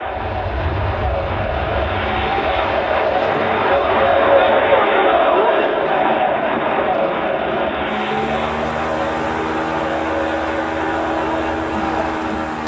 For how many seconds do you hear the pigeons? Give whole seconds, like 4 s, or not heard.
not heard.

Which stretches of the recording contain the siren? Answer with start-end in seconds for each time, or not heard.
not heard.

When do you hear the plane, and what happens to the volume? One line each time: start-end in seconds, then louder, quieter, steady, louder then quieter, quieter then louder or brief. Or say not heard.
0.0-12.6 louder.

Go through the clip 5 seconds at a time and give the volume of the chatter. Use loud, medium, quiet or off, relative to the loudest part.
loud, loud, medium.